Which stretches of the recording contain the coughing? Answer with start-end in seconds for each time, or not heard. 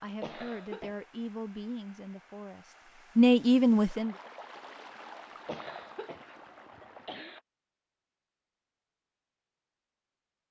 0.2-1.1, 5.5-7.4.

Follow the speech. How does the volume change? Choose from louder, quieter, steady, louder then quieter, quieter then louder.
quieter then louder.